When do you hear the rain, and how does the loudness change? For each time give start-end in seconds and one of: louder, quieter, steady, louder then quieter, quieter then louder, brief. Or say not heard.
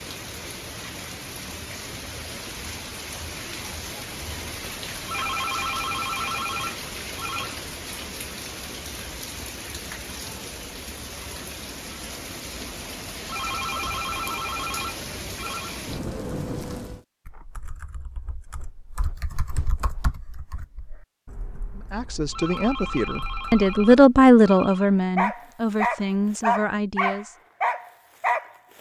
0.0-17.1 steady.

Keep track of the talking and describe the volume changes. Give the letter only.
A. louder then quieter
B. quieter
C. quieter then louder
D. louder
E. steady
A.